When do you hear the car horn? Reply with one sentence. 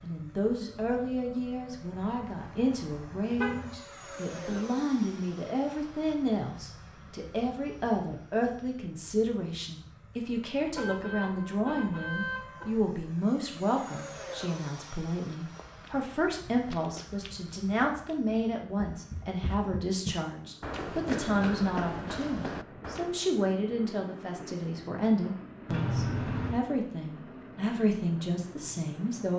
You can hear the car horn from 1.9 to 3.8 s, from 10.7 to 12.7 s and from 25.6 to 26.6 s.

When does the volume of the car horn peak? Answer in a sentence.
The volume of the car horn peaks at 26 seconds.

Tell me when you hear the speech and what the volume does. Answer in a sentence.
You can hear the speech from 0.0 to 29.3 s, at a steady volume.